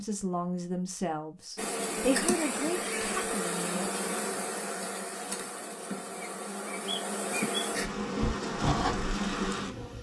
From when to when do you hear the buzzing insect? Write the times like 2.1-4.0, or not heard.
1.6-9.9.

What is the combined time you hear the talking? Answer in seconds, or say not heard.
4 s.